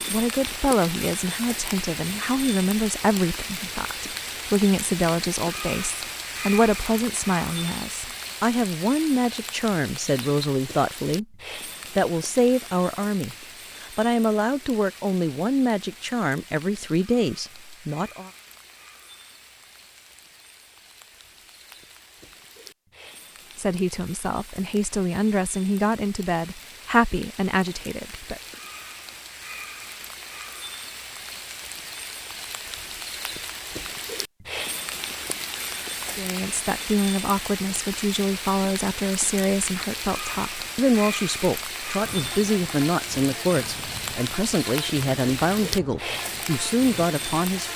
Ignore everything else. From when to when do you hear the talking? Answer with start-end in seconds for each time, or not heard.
0.1-11.2, 11.9-18.3, 23.6-28.4, 36.0-47.7.